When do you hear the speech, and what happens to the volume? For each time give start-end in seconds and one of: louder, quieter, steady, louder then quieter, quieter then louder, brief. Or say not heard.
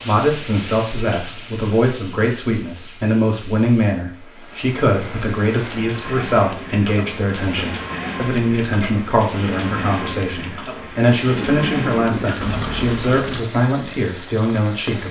0.0-15.0 steady.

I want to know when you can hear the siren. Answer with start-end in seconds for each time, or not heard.
not heard.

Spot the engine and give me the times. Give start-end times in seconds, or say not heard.
11.3-13.4.